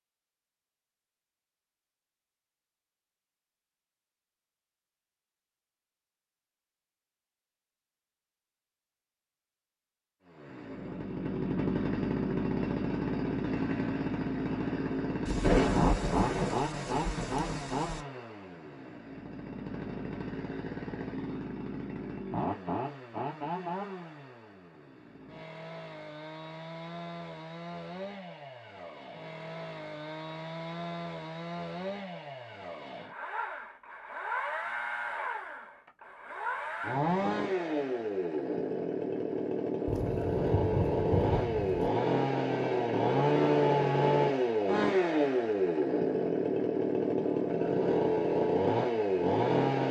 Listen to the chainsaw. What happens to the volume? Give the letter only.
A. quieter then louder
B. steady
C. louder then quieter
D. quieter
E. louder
A.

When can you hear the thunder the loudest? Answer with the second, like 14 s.
16 s.